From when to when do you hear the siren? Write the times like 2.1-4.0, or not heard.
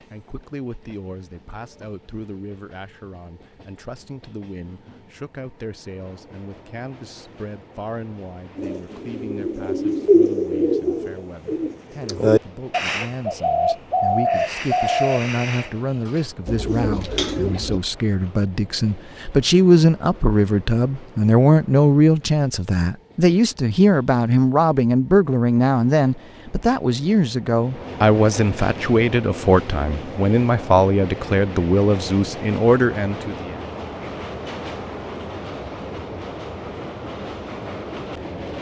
not heard.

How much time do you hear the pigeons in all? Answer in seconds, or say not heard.
9 s.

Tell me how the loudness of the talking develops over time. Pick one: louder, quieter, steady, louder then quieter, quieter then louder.
louder.